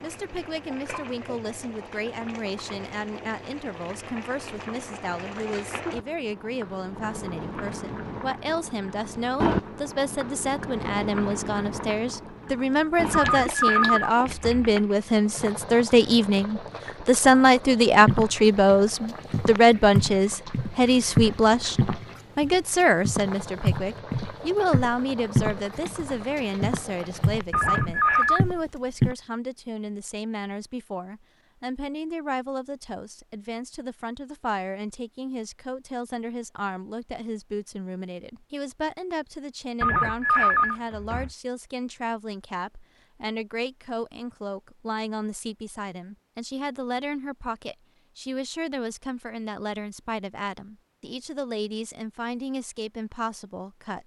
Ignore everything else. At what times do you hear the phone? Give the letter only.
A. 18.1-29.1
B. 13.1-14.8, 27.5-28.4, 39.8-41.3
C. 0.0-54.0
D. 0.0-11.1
B.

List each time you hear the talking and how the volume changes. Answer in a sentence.
You can hear the talking from 0.0 to 54.0 s, getting louder then quieter.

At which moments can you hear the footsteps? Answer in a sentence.
The footsteps can be heard from 18.1 to 29.1 s.